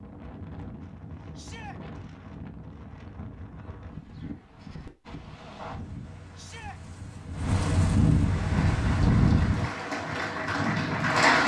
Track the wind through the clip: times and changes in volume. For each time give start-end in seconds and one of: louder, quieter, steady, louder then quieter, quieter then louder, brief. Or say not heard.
0.0-11.4 louder.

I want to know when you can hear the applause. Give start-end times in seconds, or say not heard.
8.2-11.4.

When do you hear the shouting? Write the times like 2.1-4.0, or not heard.
1.4-1.8, 6.3-6.8.